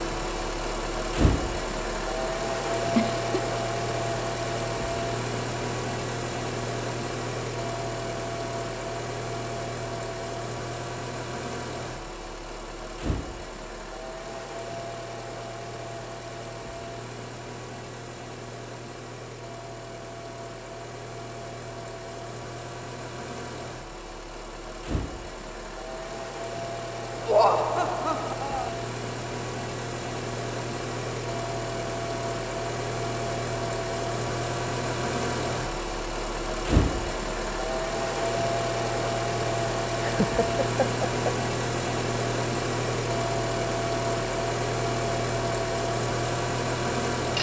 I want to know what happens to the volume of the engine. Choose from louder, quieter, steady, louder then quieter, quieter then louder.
quieter then louder.